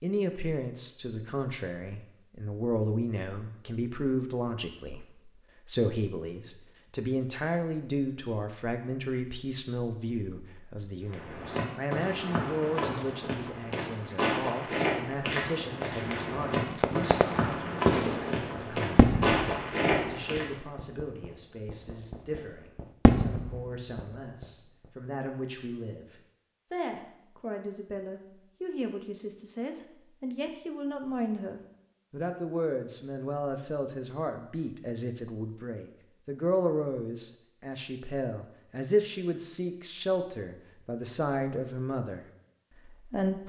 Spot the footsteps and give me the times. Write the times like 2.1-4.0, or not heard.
11.1-20.5.